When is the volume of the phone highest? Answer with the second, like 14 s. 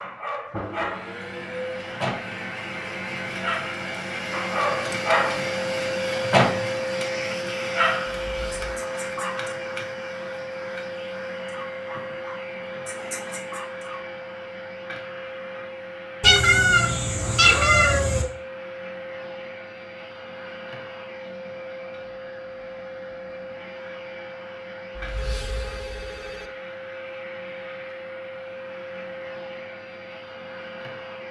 25 s.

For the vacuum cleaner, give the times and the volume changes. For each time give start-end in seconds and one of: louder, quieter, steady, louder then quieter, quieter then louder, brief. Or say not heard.
0.0-31.2 quieter.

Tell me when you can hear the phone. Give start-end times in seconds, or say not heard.
8.3-8.8, 24.9-26.5.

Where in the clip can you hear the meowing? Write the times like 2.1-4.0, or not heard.
16.2-18.2.